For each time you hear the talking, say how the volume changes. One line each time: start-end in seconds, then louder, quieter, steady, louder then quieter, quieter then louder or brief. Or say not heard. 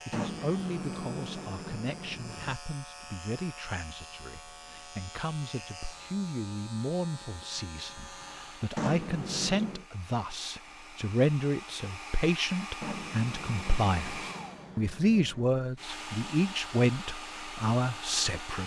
0.1-18.6 louder.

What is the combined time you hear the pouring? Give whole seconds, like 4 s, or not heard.
6 s.